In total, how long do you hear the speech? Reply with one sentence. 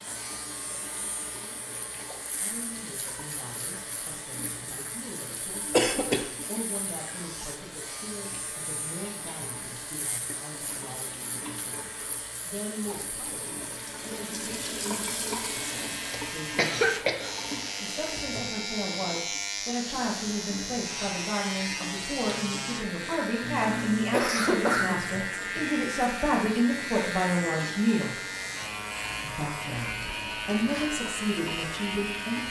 The speech can be heard for 28 seconds in total.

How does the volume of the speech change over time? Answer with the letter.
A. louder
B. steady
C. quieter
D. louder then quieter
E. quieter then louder
A.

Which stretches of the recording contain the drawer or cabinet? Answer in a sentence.
The drawer or cabinet can't be heard in this clip.